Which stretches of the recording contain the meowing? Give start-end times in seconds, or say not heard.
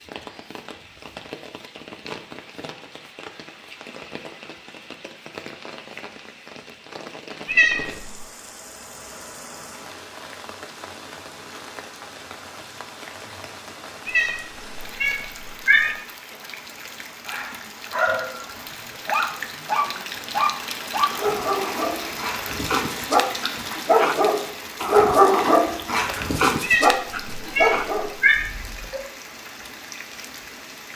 7.5-8.2, 14.1-15.9, 26.6-28.4.